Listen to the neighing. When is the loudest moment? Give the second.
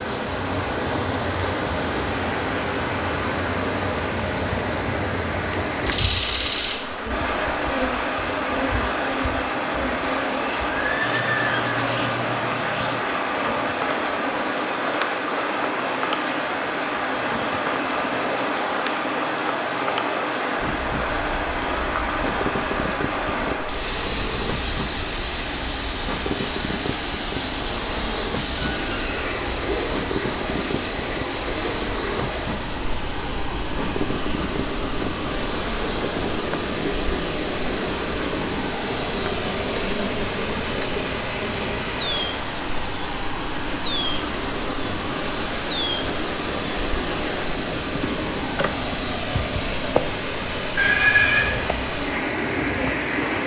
51 s.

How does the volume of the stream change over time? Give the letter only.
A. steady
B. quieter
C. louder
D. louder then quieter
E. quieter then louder
A.